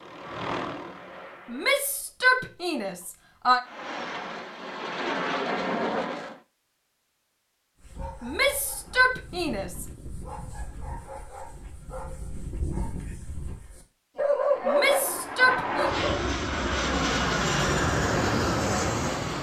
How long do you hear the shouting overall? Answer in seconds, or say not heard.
5 s.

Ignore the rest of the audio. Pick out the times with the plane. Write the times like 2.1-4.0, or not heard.
0.0-1.9, 3.6-6.4, 14.4-19.3.